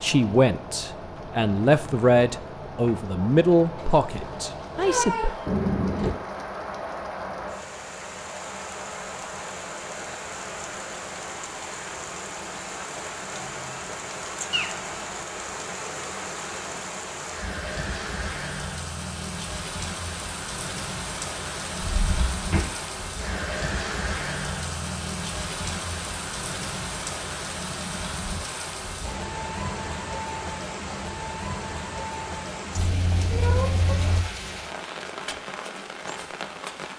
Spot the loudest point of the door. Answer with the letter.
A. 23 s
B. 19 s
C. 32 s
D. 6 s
D.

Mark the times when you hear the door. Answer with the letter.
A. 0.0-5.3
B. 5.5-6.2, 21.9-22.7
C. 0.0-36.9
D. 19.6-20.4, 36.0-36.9
B.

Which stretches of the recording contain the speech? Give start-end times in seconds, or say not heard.
0.0-5.3.